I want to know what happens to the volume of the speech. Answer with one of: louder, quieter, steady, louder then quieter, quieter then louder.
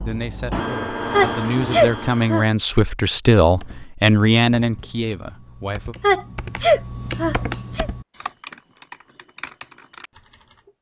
louder then quieter.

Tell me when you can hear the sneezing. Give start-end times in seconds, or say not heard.
1.1-2.5, 6.0-7.9.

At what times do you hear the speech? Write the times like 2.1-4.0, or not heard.
0.0-6.0.